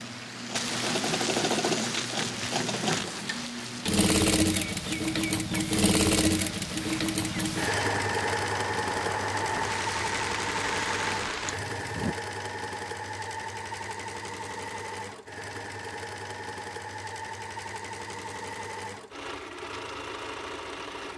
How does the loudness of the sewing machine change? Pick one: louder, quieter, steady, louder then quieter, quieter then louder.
quieter.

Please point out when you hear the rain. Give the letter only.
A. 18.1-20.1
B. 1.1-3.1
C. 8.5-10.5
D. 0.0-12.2
D.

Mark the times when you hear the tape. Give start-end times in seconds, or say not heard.
1.1-3.1.